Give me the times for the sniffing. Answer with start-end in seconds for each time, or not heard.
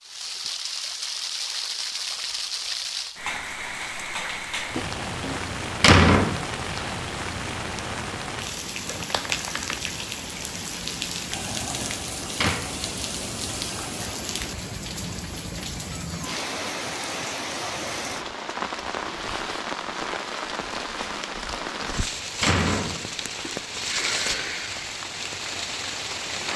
23.4-24.9.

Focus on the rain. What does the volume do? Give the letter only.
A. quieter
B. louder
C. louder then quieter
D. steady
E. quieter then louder
D.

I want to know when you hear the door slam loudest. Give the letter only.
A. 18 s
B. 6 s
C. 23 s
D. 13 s
B.